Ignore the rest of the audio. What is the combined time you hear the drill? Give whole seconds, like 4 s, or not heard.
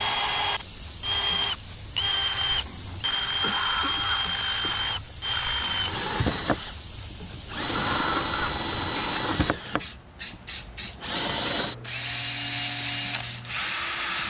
14 s.